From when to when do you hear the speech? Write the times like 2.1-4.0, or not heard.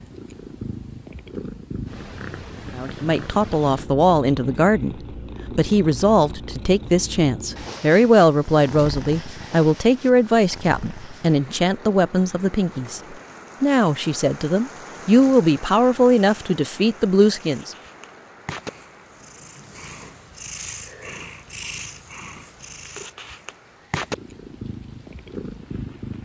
2.8-17.8.